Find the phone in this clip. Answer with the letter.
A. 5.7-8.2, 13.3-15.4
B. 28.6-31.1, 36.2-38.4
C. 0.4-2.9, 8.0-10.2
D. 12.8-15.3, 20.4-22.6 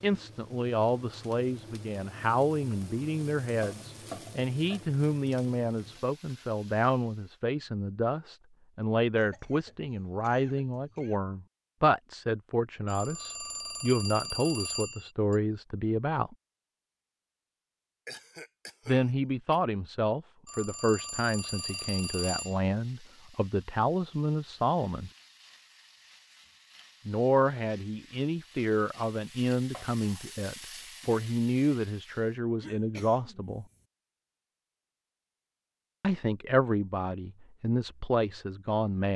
D.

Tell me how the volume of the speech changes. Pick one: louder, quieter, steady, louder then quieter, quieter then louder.
steady.